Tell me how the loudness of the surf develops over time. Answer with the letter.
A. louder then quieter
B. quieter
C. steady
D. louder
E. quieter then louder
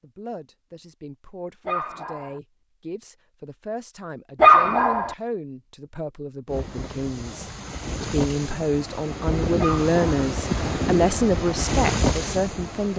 D.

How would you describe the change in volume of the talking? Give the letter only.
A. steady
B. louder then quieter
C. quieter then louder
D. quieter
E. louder
E.